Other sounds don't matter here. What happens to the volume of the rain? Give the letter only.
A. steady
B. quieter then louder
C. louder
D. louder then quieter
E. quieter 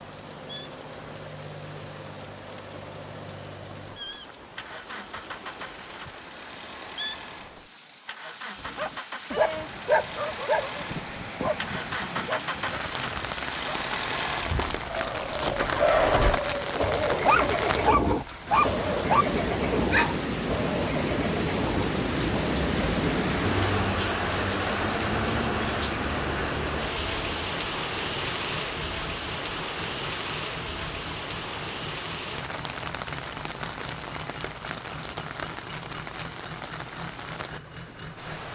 D.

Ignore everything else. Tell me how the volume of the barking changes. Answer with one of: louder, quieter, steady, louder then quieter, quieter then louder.
quieter then louder.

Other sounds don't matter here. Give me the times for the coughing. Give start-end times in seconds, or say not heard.
not heard.